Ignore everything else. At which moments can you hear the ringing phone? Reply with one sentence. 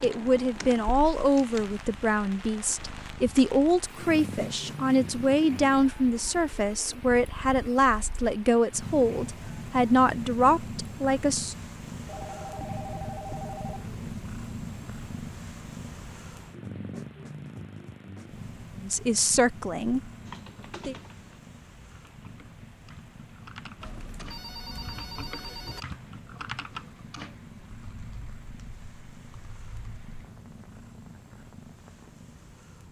The ringing phone can be heard from 12.1 to 13.9 s and from 23.8 to 25.9 s.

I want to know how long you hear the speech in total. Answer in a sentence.
The speech can be heard for 13 seconds in total.